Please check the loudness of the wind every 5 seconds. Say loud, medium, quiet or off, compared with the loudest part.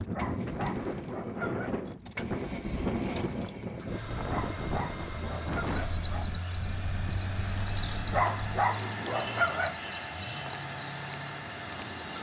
loud, medium, off.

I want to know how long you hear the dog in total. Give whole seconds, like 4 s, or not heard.
5 s.